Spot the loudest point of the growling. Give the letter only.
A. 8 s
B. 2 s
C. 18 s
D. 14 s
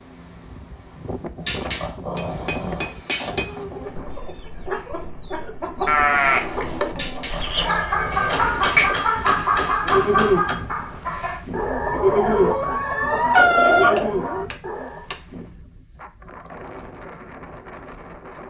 D.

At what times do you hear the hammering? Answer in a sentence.
You can hear the hammering from 2.1 to 3.6 s, from 8.1 to 10.6 s and from 13.9 to 15.2 s.